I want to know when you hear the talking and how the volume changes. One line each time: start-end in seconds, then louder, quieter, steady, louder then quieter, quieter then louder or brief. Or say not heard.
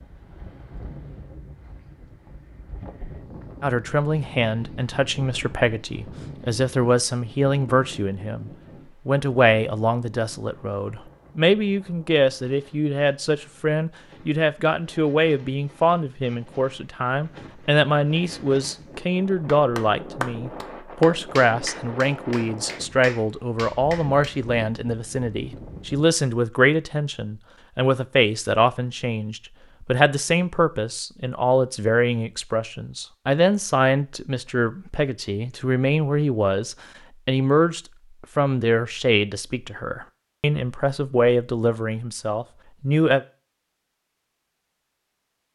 3.6-43.2 steady.